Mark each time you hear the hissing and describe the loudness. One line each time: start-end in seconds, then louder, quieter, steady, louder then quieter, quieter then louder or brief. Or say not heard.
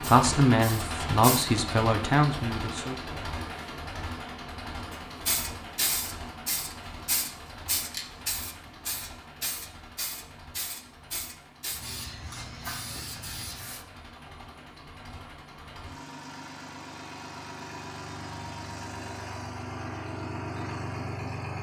0.0-1.4 brief
4.9-13.8 quieter.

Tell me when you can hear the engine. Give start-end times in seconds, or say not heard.
0.0-21.5.